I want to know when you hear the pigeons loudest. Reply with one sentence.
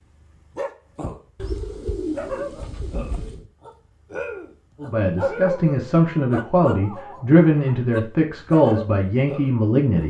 The loudest moment of the pigeons is at 2 seconds.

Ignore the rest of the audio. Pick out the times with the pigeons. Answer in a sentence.
You can hear the pigeons from 1.4 to 3.5 s.